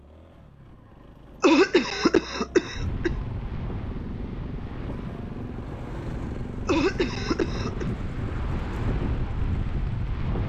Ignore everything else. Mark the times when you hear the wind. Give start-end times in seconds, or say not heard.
2.7-10.4.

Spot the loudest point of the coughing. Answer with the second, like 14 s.
2 s.